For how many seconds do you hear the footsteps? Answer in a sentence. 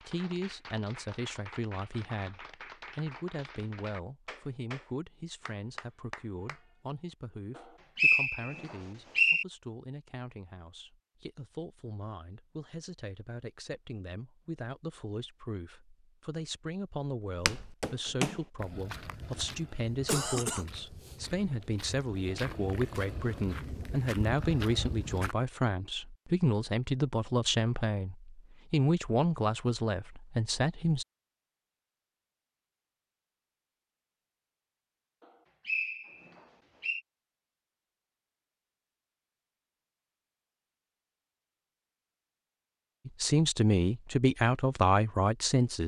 You can hear the footsteps for 8 seconds altogether.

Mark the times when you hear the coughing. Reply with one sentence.
You can hear the coughing from 20.1 to 21.1 s.